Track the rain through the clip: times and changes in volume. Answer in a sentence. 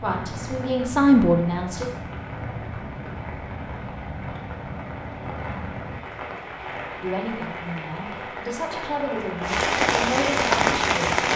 The rain can be heard from 0.0 to 11.3 s, getting louder.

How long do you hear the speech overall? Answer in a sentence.
The speech can be heard for 6 seconds in total.